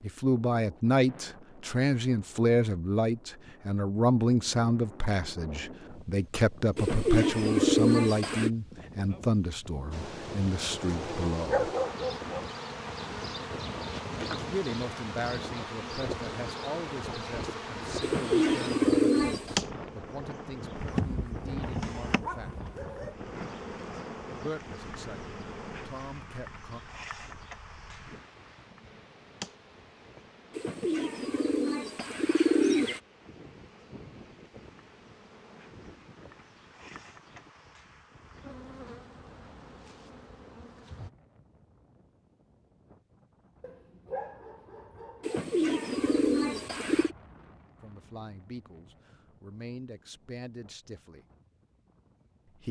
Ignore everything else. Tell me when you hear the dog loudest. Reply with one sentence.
The loudest moment of the dog is at 12 seconds.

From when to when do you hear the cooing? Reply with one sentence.
You can hear the cooing from 6.8 to 8.5 s, from 18.0 to 19.6 s, from 30.6 to 33.0 s and from 45.2 to 47.1 s.